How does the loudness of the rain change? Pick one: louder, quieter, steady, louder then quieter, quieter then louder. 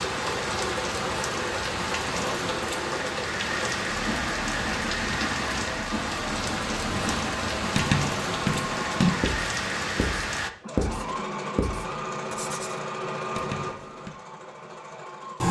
steady.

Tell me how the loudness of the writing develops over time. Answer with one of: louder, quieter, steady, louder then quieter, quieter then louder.
quieter.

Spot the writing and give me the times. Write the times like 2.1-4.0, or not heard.
6.8-14.1.